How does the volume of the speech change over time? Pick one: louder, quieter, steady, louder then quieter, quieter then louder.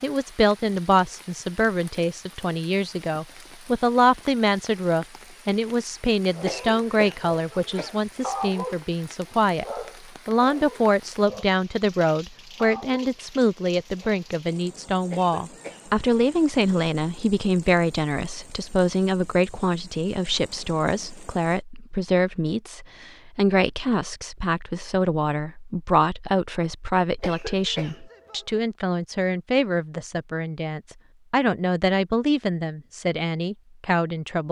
steady.